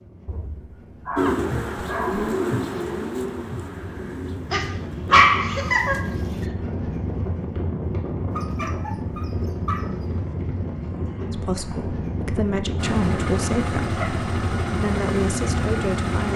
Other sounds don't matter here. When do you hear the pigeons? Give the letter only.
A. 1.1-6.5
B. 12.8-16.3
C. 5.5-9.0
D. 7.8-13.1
A.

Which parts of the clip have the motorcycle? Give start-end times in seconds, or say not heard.
12.8-16.3.